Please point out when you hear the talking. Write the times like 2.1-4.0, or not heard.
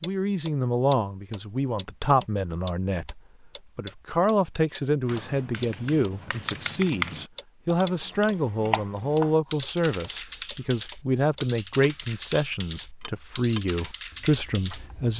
0.0-15.1.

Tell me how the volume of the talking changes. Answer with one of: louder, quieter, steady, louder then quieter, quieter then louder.
steady.